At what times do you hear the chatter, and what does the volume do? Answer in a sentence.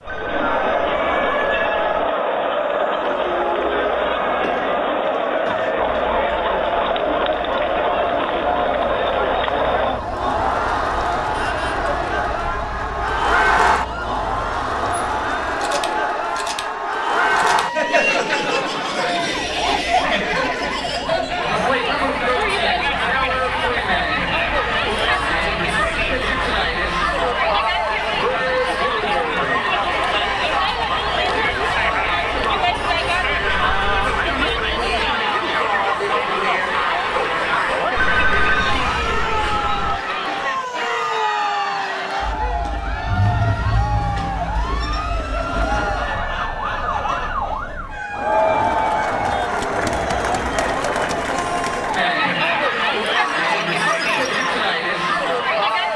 You can hear the chatter from 0.0 to 55.9 s, at a steady volume.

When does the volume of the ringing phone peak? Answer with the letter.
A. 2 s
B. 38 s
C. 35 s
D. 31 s
B.